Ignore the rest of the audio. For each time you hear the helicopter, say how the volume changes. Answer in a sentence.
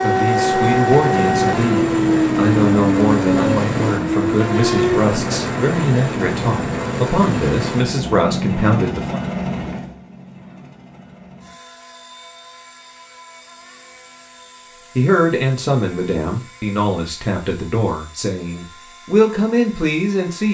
The helicopter can be heard from 0.0 to 20.4 s, getting quieter.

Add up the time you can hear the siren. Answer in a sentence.
The siren can be heard for 5 seconds in total.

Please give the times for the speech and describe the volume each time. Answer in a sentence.
You can hear the speech from 0.0 to 9.2 s, at a steady volume; and from 14.9 to 20.4 s, getting quieter then louder.